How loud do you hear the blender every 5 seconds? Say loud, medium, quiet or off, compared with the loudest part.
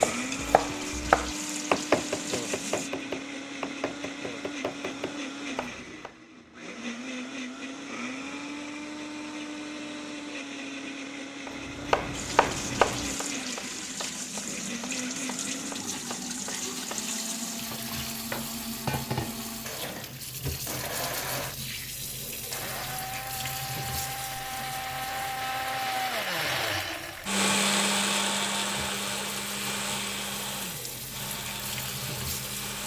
medium, medium, medium, medium, medium, loud, medium.